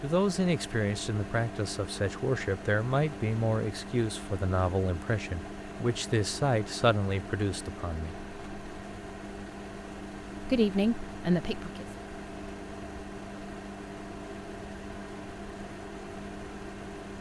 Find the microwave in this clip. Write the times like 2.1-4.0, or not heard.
0.0-17.1.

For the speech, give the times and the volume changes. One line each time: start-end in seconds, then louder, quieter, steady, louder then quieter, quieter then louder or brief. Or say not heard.
0.0-8.2 steady
10.4-11.8 brief.